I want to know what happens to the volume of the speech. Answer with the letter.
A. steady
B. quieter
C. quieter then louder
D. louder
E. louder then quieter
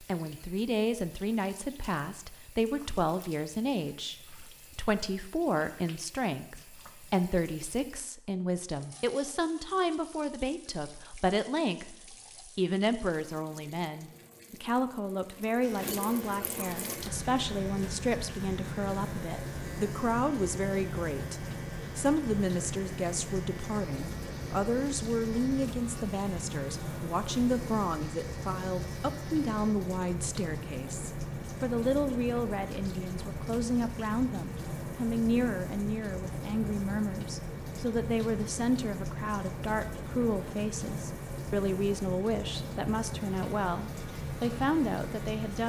A.